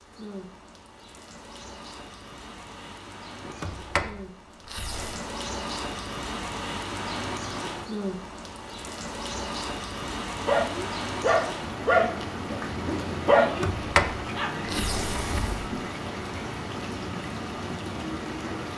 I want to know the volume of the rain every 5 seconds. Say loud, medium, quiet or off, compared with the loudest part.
medium, loud, loud, loud.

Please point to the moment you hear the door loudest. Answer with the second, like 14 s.
14 s.